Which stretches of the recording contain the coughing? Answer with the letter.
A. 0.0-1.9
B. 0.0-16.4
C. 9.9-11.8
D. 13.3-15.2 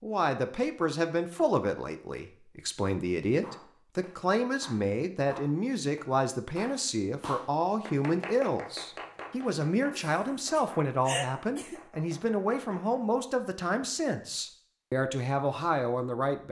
C.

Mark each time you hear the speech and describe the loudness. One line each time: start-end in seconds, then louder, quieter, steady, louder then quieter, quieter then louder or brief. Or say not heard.
0.0-16.4 steady.